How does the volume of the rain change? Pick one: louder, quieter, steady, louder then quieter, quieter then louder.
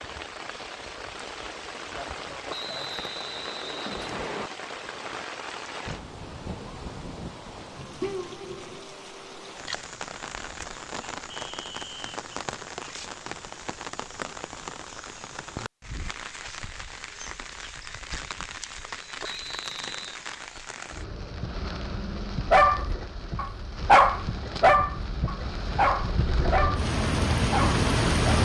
louder.